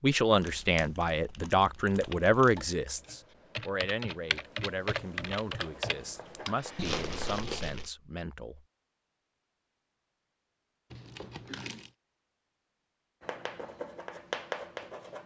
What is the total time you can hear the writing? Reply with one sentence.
You can hear the writing for 4 seconds altogether.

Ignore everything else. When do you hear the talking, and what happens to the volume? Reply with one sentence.
You can hear the talking from 0.0 to 8.7 s, getting quieter.